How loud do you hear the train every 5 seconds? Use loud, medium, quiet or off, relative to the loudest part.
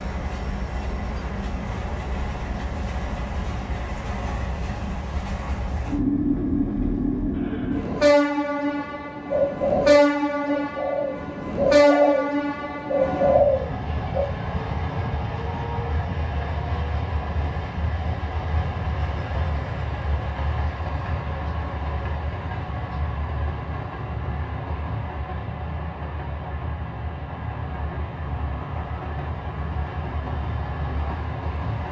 medium, loud, loud, medium, medium, medium, medium.